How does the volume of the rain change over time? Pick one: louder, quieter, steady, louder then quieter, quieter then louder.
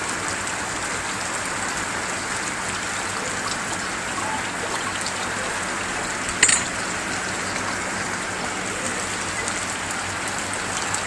steady.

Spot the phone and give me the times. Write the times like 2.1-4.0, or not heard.
not heard.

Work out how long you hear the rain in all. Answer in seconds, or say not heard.
11 s.